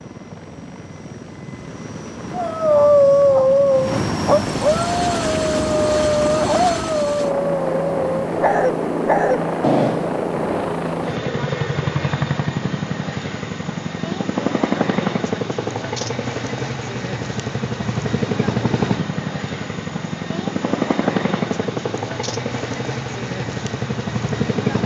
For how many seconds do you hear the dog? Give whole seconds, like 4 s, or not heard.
8 s.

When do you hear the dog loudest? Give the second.
3 s.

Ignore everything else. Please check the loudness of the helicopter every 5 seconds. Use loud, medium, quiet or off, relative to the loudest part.
medium, loud, loud, loud, loud.